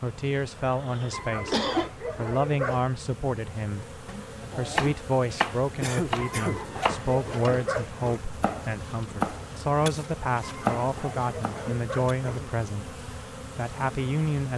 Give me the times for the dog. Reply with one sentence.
The dog can be heard from 1.1 to 2.9 s, from 6.2 to 8.2 s and from 10.4 to 12.2 s.